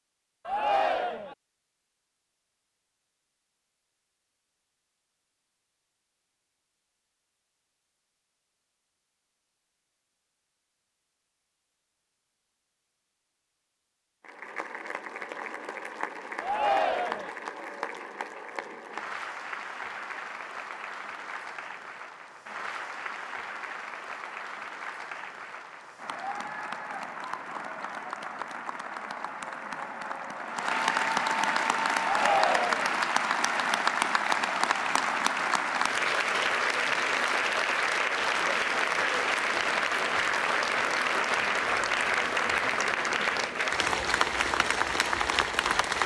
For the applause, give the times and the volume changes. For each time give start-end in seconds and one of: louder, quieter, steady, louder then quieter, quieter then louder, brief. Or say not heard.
14.2-46.0 louder.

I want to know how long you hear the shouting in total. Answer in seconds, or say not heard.
3 s.